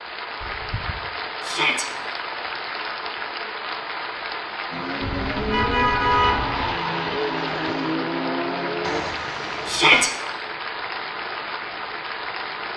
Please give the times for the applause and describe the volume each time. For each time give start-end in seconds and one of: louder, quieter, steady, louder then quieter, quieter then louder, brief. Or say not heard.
0.0-12.7 steady.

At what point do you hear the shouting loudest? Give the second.
10 s.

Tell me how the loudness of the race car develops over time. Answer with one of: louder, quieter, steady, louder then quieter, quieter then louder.
steady.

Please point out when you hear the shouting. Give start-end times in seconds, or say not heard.
1.4-1.9, 9.7-10.1.